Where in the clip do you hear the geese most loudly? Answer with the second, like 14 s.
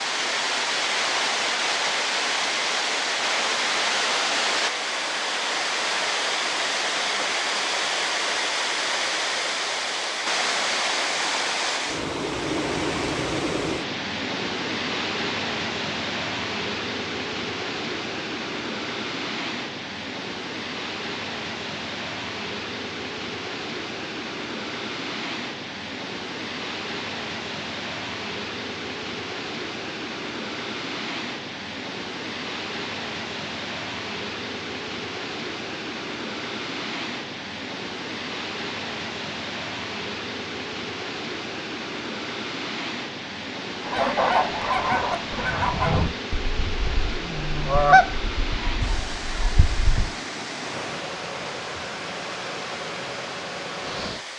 48 s.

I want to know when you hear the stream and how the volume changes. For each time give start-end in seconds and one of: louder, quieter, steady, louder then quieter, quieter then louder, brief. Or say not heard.
0.0-54.3 quieter.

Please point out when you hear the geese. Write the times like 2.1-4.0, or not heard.
43.8-50.1.